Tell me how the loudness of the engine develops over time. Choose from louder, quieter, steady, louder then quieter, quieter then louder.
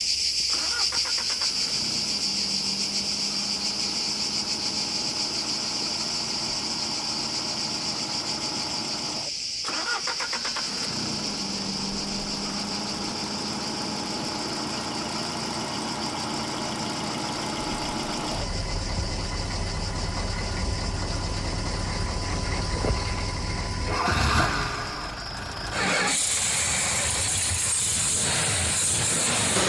louder.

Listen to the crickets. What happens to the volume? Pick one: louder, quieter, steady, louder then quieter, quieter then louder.
quieter.